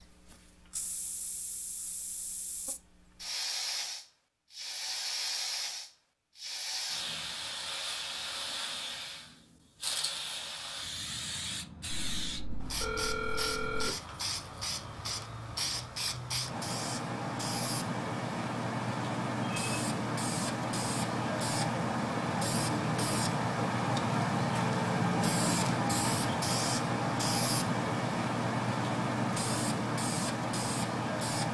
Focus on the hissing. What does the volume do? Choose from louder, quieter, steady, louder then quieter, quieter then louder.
louder.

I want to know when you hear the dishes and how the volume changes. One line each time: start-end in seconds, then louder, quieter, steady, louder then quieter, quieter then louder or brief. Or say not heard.
not heard.